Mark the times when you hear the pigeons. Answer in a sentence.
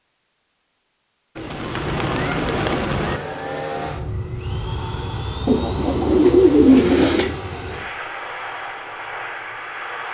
You can hear the pigeons from 1.4 to 3.2 s and from 5.5 to 7.3 s.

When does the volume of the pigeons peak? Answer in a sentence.
The volume of the pigeons peaks at 7 seconds.